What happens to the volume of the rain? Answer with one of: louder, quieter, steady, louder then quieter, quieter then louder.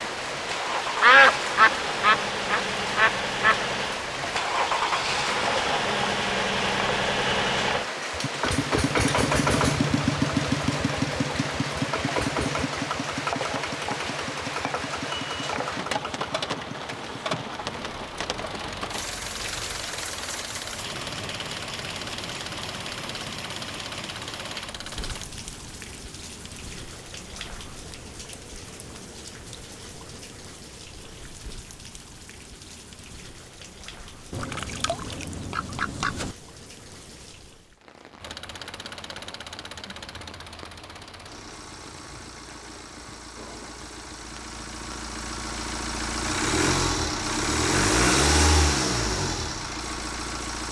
quieter.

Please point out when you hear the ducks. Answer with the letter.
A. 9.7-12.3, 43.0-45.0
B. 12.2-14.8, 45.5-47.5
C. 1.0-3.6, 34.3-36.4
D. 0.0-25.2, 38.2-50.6
C.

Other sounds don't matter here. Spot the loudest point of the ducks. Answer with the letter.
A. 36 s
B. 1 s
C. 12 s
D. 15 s
B.